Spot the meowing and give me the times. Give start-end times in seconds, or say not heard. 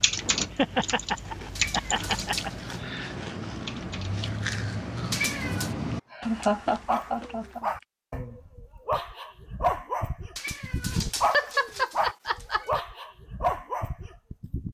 1.6-2.9, 5.1-5.8, 10.3-12.8.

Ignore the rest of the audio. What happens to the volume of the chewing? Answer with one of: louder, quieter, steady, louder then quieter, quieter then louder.
louder then quieter.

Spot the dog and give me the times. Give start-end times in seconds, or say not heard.
6.8-14.6.